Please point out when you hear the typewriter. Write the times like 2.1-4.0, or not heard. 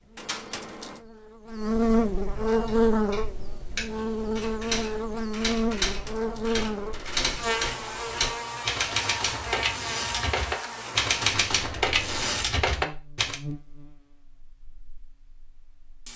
2.5-13.3.